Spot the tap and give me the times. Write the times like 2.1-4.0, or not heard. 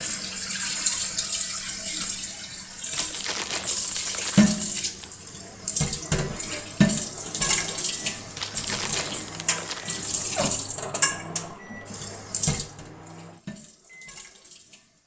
0.0-15.0.